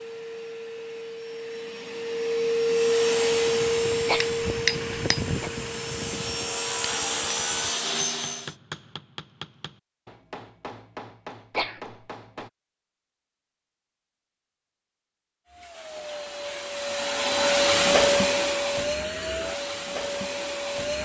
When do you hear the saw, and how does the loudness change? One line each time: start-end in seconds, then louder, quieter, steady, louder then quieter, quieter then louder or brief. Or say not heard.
2.6-8.6 quieter then louder.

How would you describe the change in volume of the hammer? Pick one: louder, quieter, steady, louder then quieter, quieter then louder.
quieter.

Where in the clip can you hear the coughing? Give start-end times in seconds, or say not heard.
4.0-5.5, 11.6-12.4.